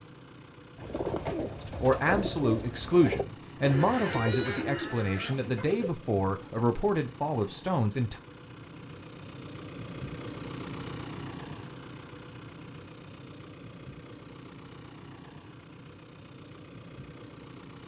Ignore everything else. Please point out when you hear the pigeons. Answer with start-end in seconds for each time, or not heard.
0.8-6.0.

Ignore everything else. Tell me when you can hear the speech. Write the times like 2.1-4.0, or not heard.
1.6-8.2.